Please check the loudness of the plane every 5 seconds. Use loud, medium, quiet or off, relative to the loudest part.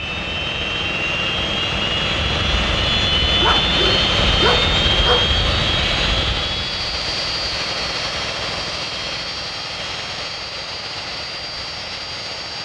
loud, loud, medium.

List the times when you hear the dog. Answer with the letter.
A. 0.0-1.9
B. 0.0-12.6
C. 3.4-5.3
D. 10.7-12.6
C.